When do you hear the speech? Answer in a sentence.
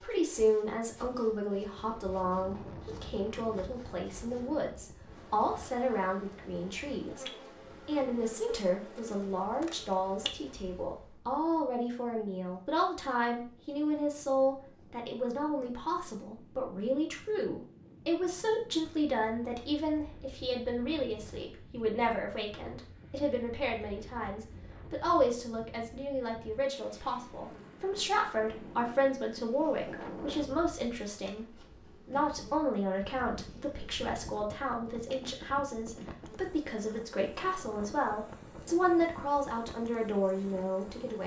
You can hear the speech from 0.0 to 7.2 s and from 7.8 to 41.2 s.